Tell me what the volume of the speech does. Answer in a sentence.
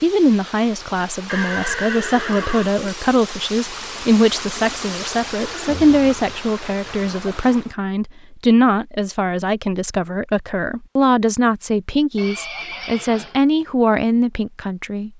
The volume of the speech stays about the same.